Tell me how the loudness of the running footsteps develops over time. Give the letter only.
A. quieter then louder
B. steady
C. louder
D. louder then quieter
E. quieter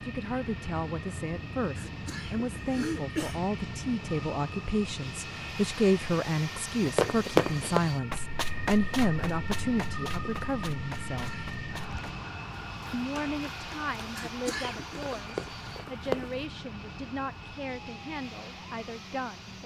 A.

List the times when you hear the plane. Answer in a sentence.
You can hear the plane from 0.0 to 19.6 s.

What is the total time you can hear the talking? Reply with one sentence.
You can hear the talking for 18 seconds altogether.